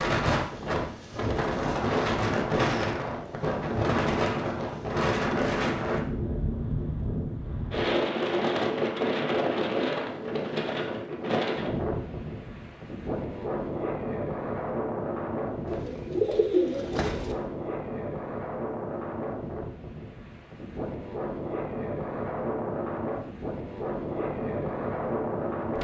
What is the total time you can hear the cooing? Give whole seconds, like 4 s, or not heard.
2 s.